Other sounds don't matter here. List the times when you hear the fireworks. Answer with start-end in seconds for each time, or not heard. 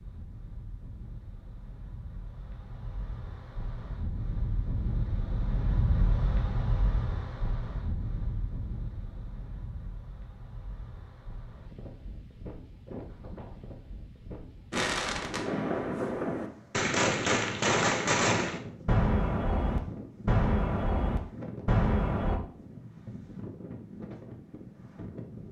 14.7-22.4.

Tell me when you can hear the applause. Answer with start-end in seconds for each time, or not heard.
not heard.